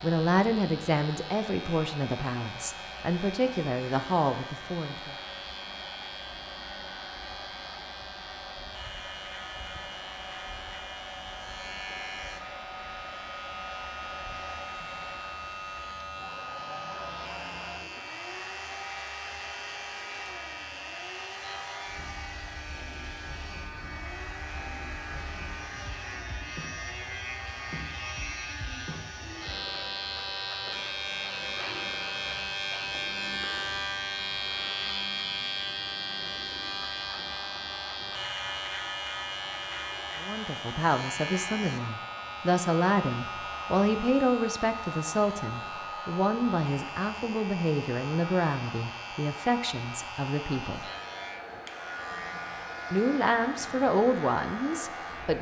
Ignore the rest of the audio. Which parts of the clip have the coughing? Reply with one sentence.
You can't hear the coughing here.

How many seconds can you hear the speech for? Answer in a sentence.
The speech can be heard for 18 seconds in total.